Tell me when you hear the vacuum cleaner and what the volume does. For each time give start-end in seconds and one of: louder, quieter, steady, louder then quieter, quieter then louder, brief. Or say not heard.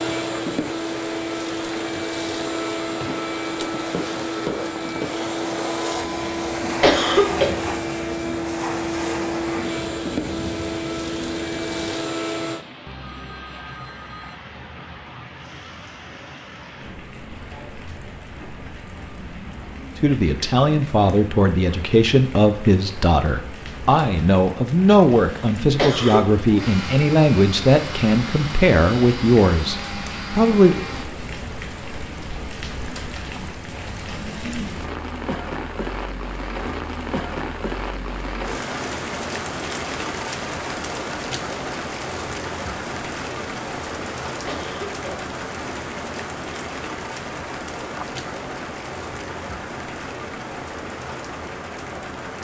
0.0-12.7 steady
26.6-31.1 steady.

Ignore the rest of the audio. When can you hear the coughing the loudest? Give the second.
7 s.